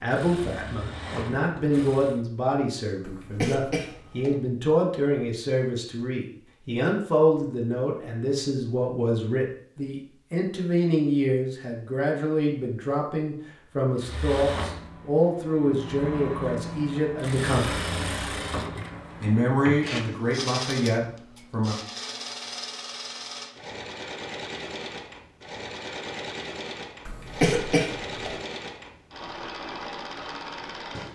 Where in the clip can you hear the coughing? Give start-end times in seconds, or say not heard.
3.0-4.3, 27.1-28.4.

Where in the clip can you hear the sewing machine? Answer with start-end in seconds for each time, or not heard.
0.0-2.2, 13.9-31.1.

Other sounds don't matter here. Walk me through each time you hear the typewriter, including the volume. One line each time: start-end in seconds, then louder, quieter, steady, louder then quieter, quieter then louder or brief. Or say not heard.
not heard.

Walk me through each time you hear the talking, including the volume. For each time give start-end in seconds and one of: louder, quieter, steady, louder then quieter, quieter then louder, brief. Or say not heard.
0.0-17.9 steady
19.2-21.8 brief.